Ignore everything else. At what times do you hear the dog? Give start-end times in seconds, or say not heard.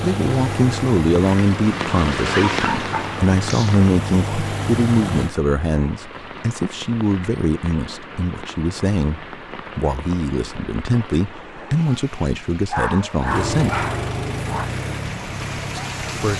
2.3-3.9, 12.7-14.7.